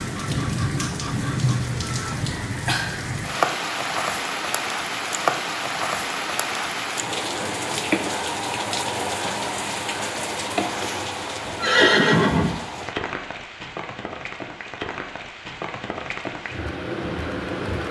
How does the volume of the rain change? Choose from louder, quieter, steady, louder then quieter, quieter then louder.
quieter.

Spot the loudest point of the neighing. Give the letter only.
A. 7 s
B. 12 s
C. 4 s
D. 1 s
B.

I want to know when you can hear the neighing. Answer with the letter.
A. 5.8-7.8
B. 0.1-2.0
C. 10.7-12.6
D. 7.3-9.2
C.